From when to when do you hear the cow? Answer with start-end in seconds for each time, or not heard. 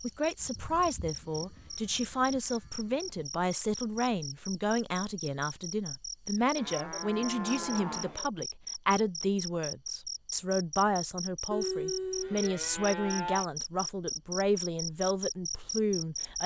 0.4-3.2, 6.5-8.3, 11.5-13.4.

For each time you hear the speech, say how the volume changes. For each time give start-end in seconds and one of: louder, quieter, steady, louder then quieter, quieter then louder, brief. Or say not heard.
0.0-16.4 steady.